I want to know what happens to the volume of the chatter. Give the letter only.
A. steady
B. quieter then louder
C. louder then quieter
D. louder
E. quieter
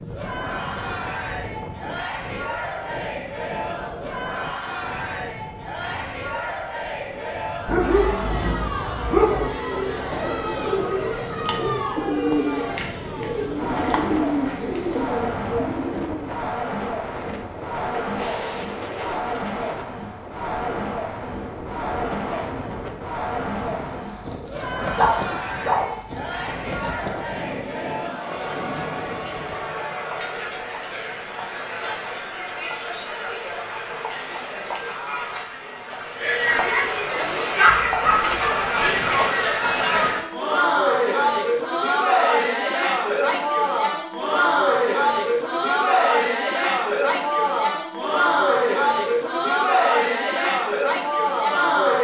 D.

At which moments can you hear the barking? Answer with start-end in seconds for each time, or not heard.
7.7-9.5, 24.9-25.9, 37.6-39.4.